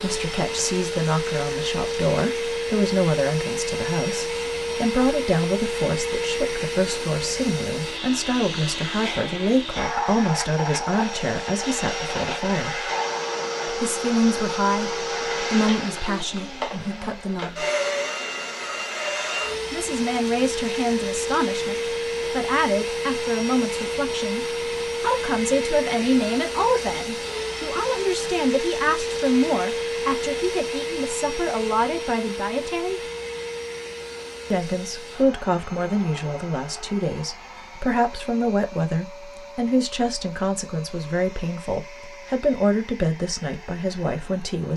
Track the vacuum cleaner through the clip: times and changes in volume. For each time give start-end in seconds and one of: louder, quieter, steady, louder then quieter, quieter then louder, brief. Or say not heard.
0.0-44.7 quieter.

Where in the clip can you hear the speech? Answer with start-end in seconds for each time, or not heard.
0.0-12.9, 13.7-17.6, 19.7-33.0, 34.5-44.7.